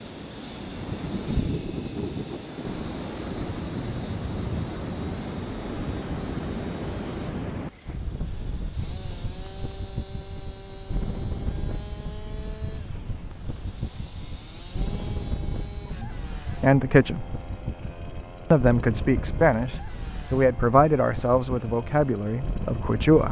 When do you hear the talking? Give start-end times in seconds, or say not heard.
16.0-17.2, 18.5-23.2.